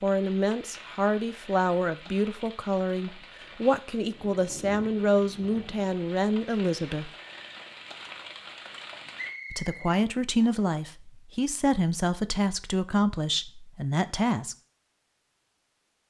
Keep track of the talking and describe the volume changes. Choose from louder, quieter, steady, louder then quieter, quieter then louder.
steady.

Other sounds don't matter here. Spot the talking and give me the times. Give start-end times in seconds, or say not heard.
0.0-7.1, 9.5-14.6.